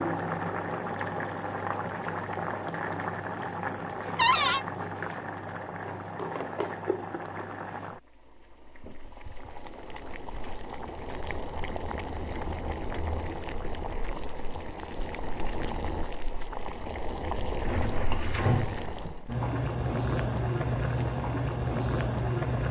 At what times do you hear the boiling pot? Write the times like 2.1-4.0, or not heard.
0.0-22.6.